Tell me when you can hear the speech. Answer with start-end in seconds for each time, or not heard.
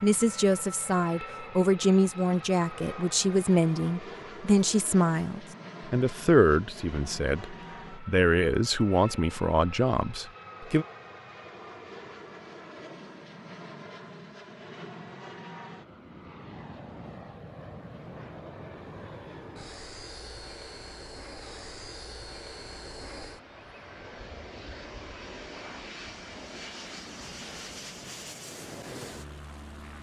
0.0-10.8.